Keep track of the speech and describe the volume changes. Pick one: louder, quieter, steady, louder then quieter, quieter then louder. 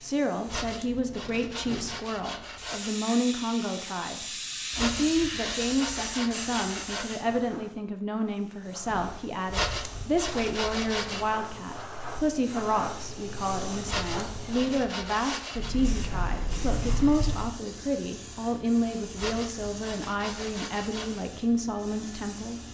steady.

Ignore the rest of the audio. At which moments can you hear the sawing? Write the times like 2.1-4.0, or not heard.
0.5-3.0, 4.7-7.2, 9.5-11.2, 13.8-15.7, 19.1-21.2.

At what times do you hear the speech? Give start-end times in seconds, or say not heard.
0.0-22.6.